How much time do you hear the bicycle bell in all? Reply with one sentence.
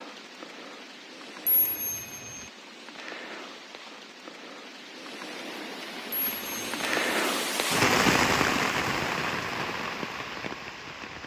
The bicycle bell can be heard for 2 seconds in total.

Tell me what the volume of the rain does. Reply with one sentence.
The volume of the rain goes up, then down.